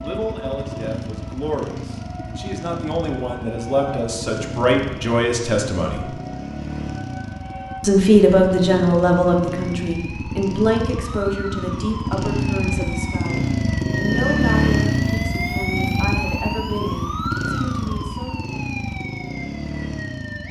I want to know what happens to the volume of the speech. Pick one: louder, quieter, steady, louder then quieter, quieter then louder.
louder then quieter.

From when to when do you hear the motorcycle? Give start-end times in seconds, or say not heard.
0.0-20.4.